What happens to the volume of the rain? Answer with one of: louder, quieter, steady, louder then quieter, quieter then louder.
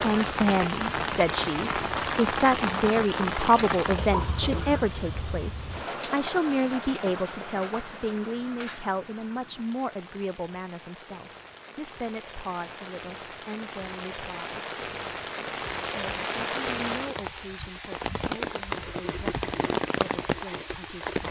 quieter then louder.